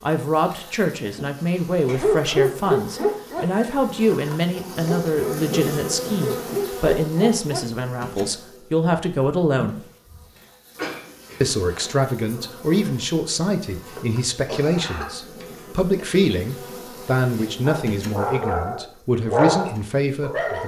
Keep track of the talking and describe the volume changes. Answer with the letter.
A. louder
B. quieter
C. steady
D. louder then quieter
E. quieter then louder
C.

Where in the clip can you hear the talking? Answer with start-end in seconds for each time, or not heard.
0.0-9.8, 11.4-20.6.